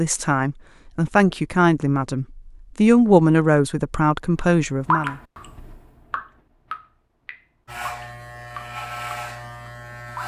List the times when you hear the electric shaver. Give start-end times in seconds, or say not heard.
7.7-10.2.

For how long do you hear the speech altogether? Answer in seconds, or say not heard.
5 s.